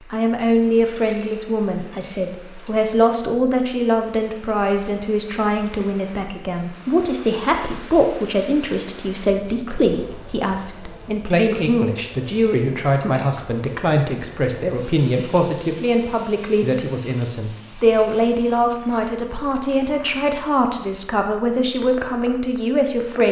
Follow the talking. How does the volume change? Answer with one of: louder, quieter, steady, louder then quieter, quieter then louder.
steady.